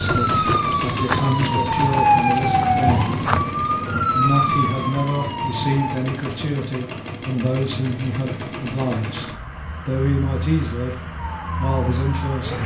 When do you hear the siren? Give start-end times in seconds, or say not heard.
0.0-6.0, 11.2-12.6.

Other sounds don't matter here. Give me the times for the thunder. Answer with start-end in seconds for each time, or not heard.
2.8-5.0.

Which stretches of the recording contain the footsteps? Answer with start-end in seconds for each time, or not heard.
0.0-3.4.